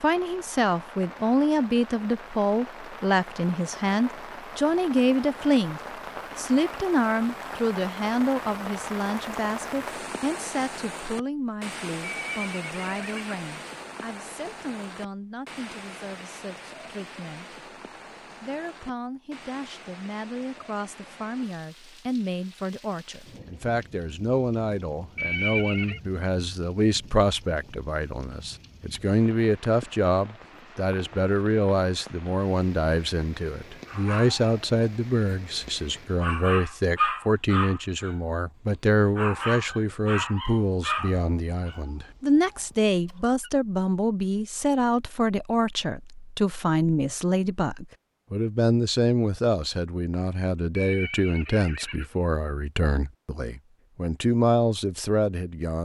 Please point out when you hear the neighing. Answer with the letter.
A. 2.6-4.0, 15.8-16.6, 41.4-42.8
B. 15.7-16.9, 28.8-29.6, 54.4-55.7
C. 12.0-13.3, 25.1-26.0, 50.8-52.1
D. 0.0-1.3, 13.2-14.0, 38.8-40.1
C.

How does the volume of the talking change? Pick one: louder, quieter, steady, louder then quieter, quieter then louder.
quieter then louder.